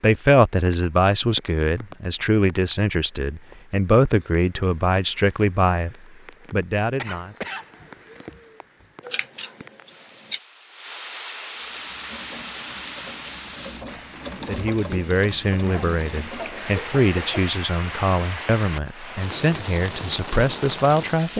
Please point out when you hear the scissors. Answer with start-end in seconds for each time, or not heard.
9.0-10.4.